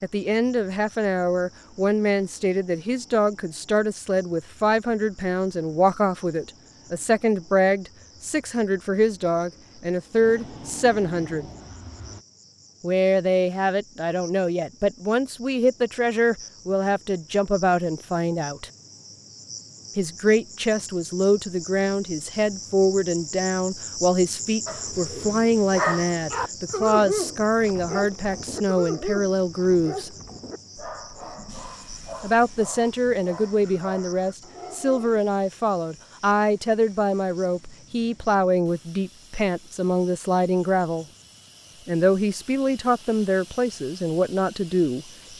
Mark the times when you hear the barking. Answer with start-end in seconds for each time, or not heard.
24.6-35.2.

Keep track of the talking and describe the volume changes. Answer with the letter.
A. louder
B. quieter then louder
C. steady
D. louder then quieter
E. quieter
C.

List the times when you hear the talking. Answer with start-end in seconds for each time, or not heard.
0.0-11.5, 12.8-18.7, 19.9-30.1, 32.2-41.0, 41.9-45.3.